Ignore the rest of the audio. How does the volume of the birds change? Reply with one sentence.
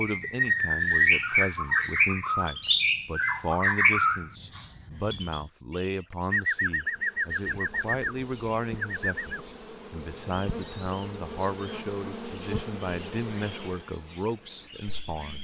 The volume of the birds goes down.